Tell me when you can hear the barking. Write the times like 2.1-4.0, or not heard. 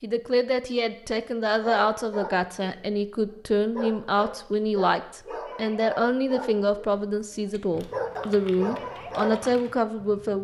1.6-9.4.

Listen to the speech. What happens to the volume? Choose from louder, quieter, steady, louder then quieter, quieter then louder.
steady.